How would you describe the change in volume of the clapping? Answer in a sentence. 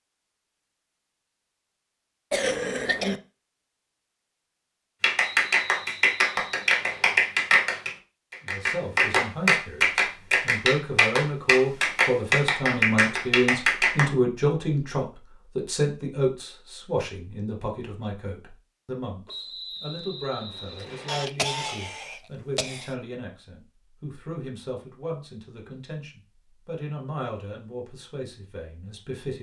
The volume of the clapping stays about the same.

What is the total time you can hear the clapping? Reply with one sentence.
The clapping can be heard for 9 seconds in total.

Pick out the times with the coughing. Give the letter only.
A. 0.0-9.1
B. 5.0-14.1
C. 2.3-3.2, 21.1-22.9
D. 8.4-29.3
C.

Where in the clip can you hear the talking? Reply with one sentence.
The talking can be heard from 8.4 to 29.3 s.